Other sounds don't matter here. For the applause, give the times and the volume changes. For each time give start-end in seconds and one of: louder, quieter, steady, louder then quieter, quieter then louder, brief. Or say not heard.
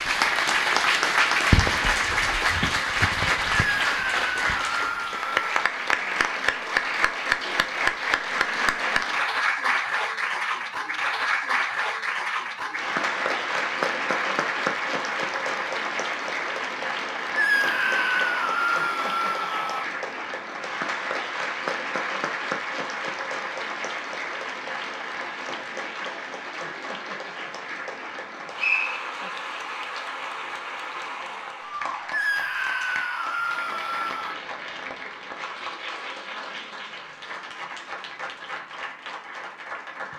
0.0-40.1 quieter.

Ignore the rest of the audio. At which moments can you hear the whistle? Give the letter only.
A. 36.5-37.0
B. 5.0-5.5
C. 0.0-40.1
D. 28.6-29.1
D.